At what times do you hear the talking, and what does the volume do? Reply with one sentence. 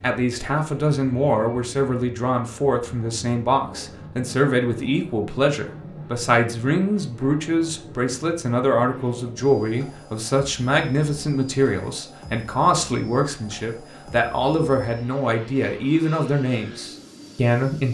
The talking can be heard from 0.0 to 17.8 s, at a steady volume.